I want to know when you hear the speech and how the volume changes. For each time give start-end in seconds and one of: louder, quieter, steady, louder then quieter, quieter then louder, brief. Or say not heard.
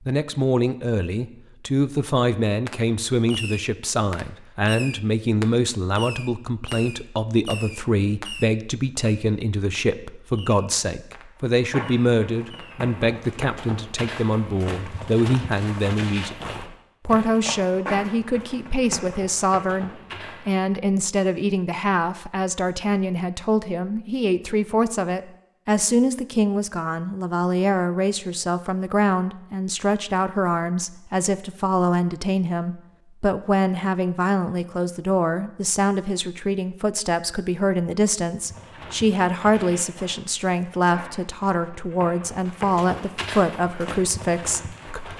0.1-45.1 steady.